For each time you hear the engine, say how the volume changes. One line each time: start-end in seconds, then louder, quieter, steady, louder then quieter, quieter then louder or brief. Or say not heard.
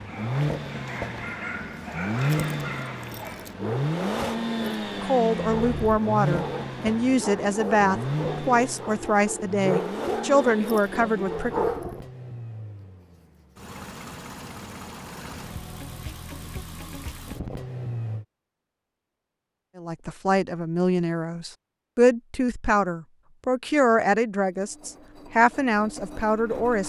0.0-18.2 quieter
24.5-26.8 brief.